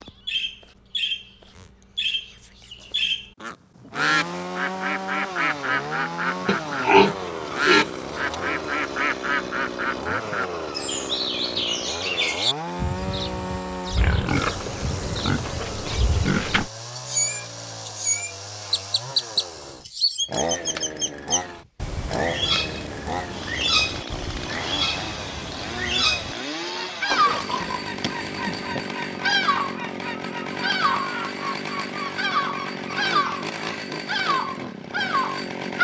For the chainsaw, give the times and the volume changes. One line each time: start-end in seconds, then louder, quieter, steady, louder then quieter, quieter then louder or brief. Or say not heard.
3.9-35.7 steady.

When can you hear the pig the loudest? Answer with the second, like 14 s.
7 s.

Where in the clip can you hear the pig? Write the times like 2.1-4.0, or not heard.
6.5-8.3, 13.9-16.7, 27.1-28.9.